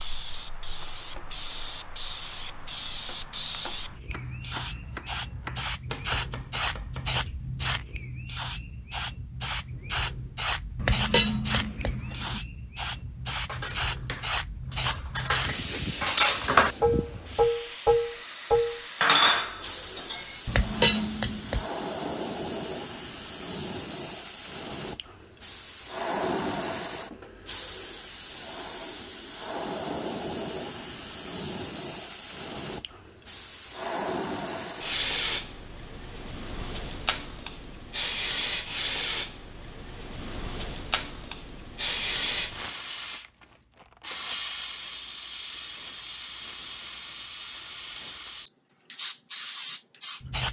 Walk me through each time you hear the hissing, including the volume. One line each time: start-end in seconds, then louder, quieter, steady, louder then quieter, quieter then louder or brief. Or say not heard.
0.0-50.4 steady.